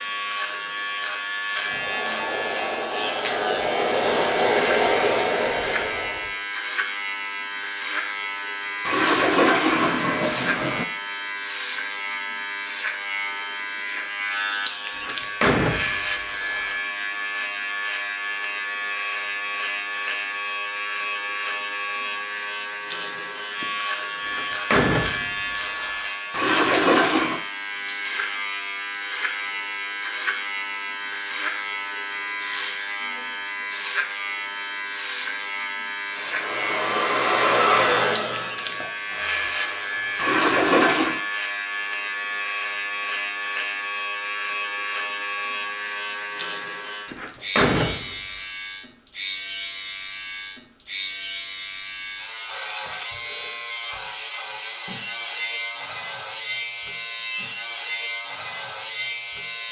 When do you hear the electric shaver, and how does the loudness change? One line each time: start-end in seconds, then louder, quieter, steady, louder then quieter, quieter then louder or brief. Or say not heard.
0.0-59.6 steady.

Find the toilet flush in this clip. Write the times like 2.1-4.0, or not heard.
8.8-10.8, 26.3-27.4, 40.1-41.2.